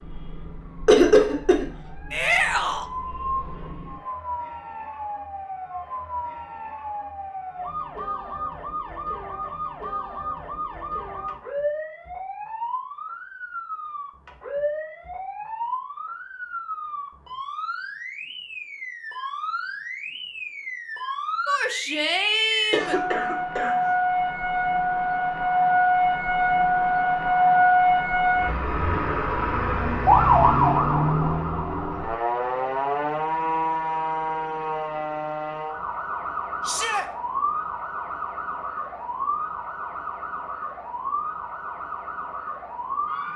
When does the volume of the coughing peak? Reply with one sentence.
The volume of the coughing peaks at 1 second.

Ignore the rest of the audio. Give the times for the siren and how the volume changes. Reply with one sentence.
The siren can be heard from 0.0 to 43.3 s, getting louder then quieter.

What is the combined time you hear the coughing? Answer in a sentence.
You can hear the coughing for 2 seconds altogether.